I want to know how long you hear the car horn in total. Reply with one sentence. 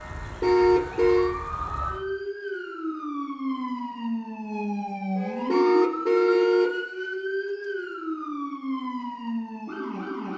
The car horn can be heard for 2 seconds in total.